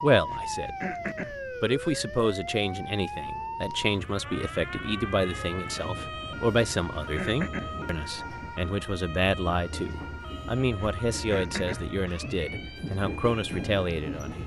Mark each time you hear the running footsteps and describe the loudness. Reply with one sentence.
You can't hear the running footsteps here.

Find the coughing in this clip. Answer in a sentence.
You can hear the coughing from 0.2 to 1.4 s, from 6.6 to 7.8 s and from 10.8 to 11.9 s.